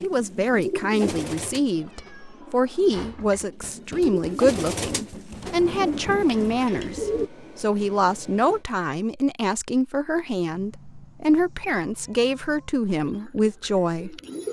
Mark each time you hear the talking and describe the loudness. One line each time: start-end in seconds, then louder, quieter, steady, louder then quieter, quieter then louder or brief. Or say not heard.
0.0-14.2 steady.